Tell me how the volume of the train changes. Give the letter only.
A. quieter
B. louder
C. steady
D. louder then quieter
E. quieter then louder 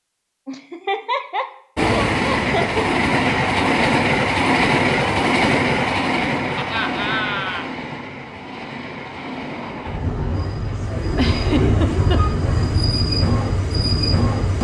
E.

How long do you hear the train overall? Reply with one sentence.
You can hear the train for 13 seconds altogether.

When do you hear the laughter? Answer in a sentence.
The laughter can be heard from 0.5 to 2.8 s, from 6.5 to 7.7 s and from 11.2 to 12.2 s.